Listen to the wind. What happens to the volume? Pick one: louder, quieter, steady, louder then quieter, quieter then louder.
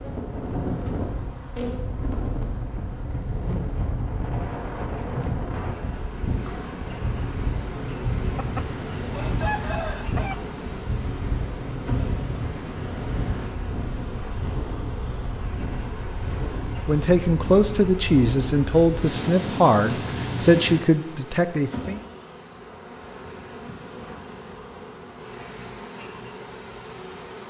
steady.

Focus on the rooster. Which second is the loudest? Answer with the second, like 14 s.
10 s.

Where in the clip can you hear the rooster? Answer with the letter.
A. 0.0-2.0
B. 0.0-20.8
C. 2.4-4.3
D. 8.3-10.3
D.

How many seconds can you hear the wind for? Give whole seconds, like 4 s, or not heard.
21 s.